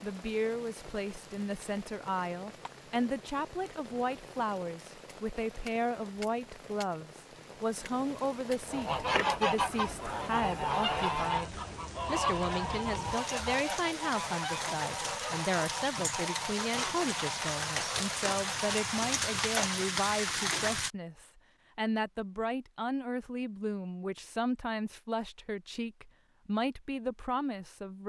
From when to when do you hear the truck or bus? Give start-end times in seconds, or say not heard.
not heard.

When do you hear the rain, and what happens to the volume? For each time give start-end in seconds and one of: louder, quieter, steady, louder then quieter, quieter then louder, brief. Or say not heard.
0.0-20.9 louder.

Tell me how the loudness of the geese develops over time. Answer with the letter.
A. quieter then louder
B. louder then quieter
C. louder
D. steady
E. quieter
E.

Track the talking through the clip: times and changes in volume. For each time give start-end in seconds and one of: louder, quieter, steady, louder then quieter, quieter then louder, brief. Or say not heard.
0.0-28.0 steady.